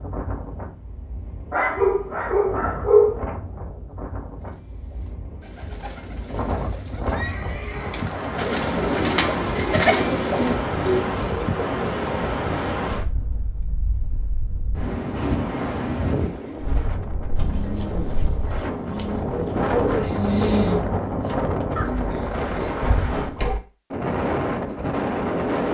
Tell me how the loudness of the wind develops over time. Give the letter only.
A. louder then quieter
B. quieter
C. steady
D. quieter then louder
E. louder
E.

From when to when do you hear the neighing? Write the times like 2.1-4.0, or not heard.
7.1-8.0.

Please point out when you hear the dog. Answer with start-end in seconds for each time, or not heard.
1.5-3.2.